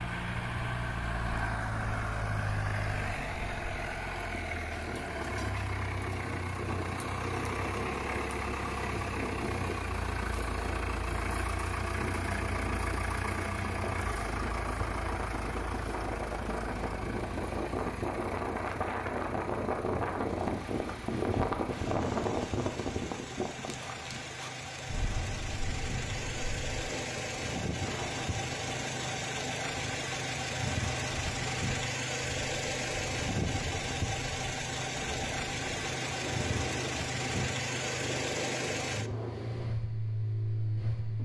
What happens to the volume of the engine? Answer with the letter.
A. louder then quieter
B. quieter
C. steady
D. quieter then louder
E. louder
D.